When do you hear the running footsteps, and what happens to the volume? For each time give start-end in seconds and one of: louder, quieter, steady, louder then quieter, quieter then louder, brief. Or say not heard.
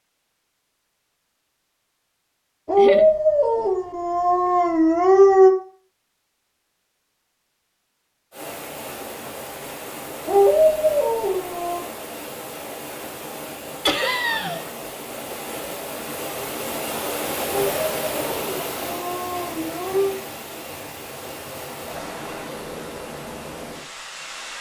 not heard.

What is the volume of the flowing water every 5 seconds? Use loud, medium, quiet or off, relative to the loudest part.
off, medium, medium, loud, medium.